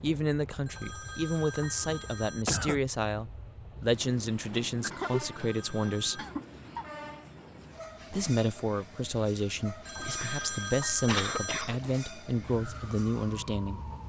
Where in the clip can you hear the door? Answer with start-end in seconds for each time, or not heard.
not heard.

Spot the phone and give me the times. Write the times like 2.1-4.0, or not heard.
0.7-2.5, 5.3-6.2, 9.8-11.7.